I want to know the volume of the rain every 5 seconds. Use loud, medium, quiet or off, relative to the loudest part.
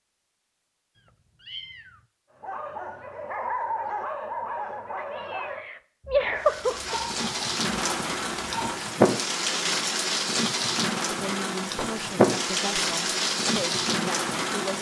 off, loud, loud.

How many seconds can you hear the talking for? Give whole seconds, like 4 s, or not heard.
4 s.